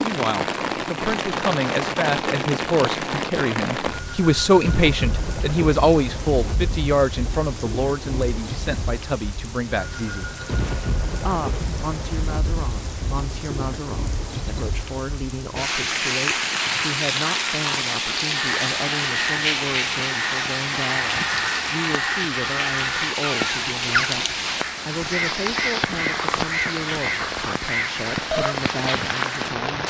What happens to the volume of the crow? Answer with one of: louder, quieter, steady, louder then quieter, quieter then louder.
steady.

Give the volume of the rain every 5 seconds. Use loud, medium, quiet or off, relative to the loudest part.
loud, medium, medium, loud, loud, loud.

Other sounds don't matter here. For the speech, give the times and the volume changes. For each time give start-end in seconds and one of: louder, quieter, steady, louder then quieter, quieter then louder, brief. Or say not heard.
0.0-10.3 louder then quieter
11.2-29.8 steady.